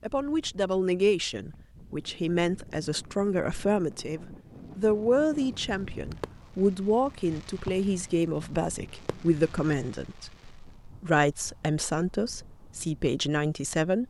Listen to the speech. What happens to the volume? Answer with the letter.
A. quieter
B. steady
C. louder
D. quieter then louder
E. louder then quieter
B.